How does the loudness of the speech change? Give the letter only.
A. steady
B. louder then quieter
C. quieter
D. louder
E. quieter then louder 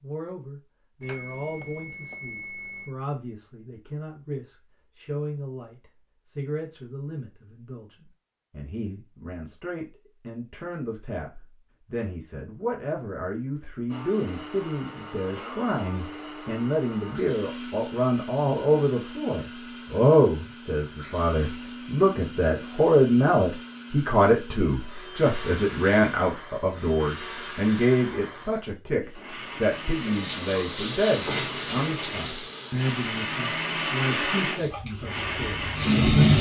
B.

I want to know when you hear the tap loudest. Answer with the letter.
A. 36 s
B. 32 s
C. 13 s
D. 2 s
A.